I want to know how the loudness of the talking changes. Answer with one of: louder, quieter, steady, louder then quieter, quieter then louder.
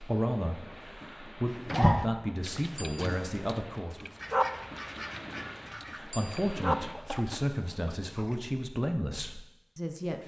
steady.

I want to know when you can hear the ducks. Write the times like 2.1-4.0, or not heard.
4.2-6.0.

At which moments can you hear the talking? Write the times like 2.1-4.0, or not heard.
0.0-4.1, 5.9-10.2.